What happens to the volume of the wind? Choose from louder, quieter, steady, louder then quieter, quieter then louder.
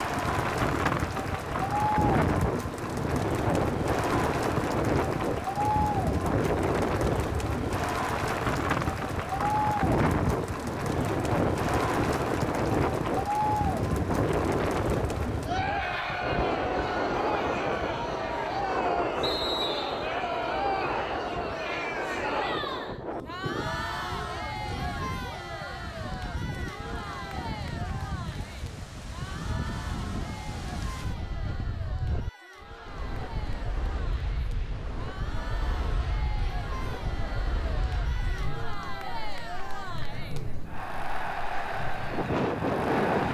quieter.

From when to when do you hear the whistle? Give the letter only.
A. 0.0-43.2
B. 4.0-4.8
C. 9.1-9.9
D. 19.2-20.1
D.